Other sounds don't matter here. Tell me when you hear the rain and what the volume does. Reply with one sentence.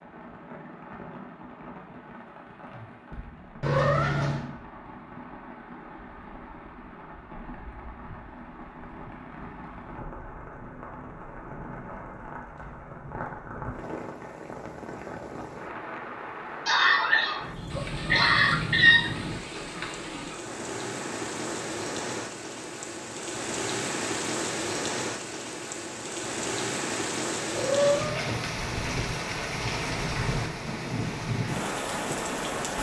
The rain can be heard from 0.0 to 32.7 s, getting louder.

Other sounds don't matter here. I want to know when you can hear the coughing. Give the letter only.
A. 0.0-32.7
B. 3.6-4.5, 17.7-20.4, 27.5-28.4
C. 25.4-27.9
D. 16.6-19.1
D.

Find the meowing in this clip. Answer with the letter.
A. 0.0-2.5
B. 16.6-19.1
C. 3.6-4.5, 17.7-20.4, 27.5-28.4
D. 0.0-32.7
C.